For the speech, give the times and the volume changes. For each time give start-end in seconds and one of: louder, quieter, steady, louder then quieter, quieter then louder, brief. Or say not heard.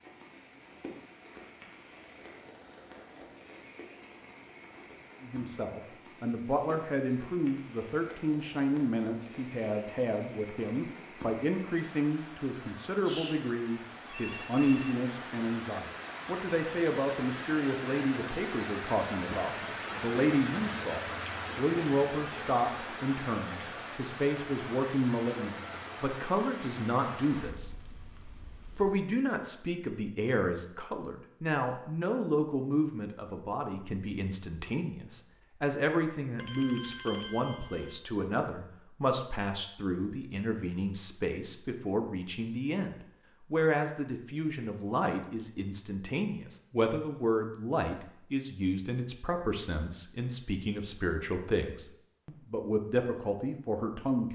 5.2-27.9 steady
28.8-54.3 steady.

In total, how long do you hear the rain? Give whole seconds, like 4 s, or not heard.
29 s.